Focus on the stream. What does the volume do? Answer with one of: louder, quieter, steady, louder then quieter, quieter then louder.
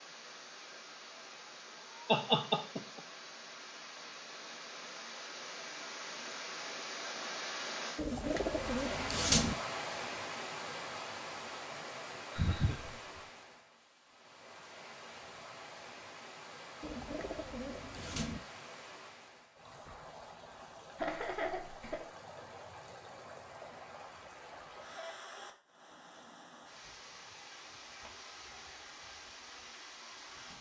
louder then quieter.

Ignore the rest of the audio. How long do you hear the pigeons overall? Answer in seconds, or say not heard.
3 s.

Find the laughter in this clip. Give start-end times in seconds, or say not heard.
2.0-3.0, 12.3-13.2, 20.9-22.0.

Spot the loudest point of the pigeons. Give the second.
9 s.